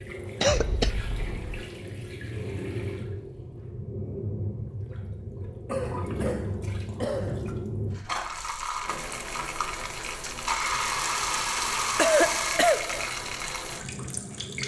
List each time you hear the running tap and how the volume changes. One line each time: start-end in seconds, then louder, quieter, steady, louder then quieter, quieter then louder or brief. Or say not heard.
0.0-14.6 louder.